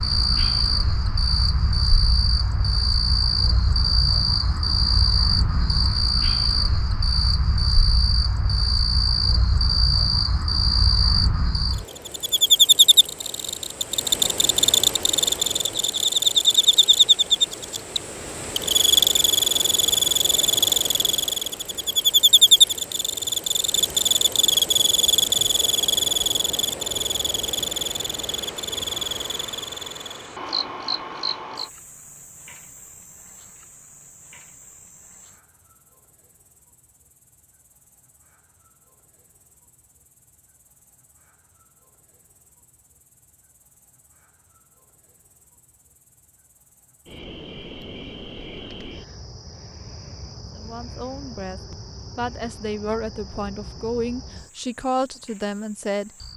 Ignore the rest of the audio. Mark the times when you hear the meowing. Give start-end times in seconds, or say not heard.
not heard.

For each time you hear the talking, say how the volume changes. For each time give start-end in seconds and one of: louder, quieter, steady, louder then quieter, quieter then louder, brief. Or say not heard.
50.5-56.3 louder.